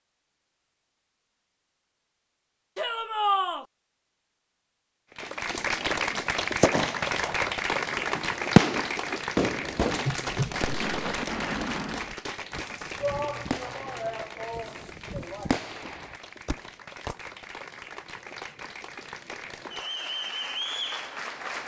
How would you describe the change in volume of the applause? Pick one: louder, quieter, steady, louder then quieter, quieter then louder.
quieter then louder.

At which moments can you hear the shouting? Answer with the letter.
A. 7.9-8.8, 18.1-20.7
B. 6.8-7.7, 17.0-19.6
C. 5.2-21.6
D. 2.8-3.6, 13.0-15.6
D.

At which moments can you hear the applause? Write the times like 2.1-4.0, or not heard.
5.2-21.6.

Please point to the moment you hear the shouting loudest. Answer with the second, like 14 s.
3 s.